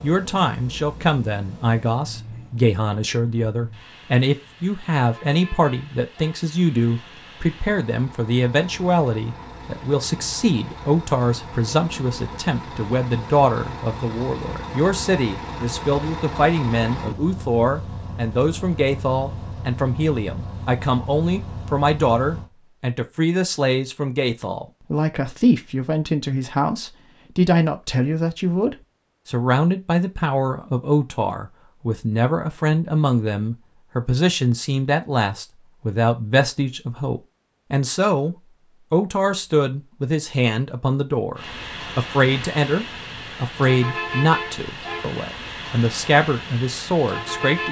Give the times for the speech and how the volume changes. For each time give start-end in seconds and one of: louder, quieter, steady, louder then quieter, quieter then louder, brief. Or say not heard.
0.0-47.6 steady.